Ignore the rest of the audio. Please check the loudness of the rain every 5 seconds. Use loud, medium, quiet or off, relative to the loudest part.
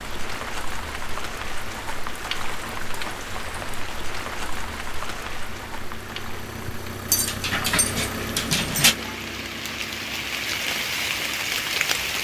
medium, medium, loud.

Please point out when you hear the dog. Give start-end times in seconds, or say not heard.
7.0-8.9.